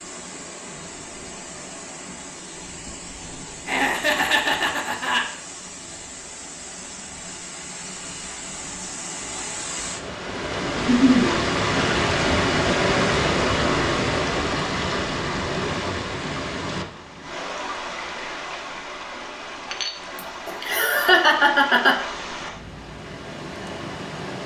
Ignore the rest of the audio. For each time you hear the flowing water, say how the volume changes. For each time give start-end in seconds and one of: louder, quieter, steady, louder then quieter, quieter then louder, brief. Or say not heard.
0.0-24.4 louder then quieter.